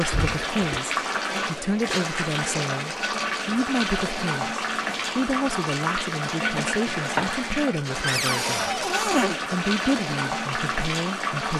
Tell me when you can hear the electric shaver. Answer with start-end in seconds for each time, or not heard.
not heard.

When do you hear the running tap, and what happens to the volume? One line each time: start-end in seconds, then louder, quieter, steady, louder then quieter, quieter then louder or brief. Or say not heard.
0.0-11.5 steady.